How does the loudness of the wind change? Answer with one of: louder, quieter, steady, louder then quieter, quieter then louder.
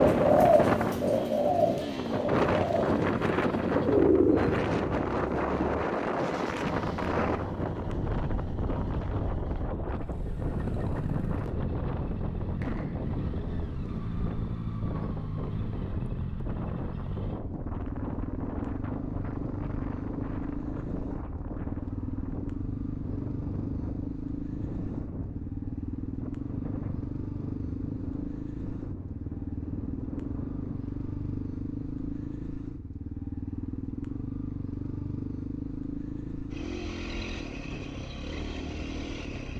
quieter.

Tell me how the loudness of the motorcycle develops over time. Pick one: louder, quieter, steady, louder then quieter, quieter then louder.
steady.